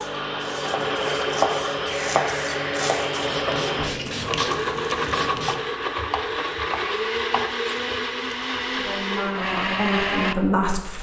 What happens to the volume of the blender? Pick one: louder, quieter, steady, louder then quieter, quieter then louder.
steady.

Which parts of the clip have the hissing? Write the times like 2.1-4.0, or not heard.
0.0-5.6.